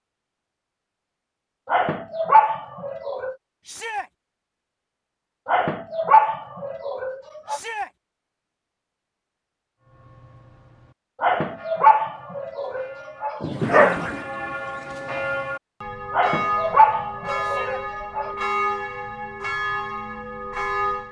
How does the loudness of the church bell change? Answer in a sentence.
The volume of the church bell goes up.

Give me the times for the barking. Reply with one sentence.
The barking can be heard from 1.6 to 3.4 s, from 5.5 to 7.6 s, from 11.2 to 14.0 s and from 16.1 to 18.4 s.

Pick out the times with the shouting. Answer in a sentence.
The shouting can be heard from 3.6 to 4.1 s, from 7.5 to 7.9 s and from 17.4 to 17.9 s.